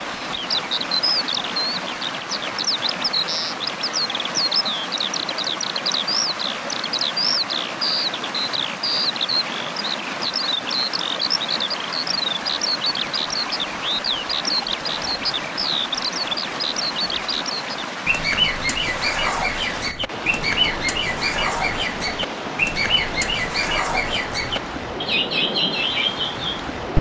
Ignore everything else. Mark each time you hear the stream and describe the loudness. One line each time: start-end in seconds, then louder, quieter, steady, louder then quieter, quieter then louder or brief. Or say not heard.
0.0-26.9 steady.